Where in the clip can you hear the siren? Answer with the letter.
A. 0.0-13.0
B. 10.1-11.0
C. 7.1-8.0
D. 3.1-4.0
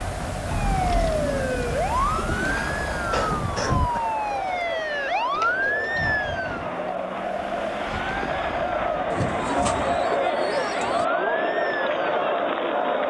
A.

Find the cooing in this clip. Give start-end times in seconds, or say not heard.
0.7-2.6, 5.3-6.8, 9.1-11.1.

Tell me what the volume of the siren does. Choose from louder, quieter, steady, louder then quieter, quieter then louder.
quieter.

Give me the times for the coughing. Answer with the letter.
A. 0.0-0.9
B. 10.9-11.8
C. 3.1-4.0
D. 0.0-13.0
C.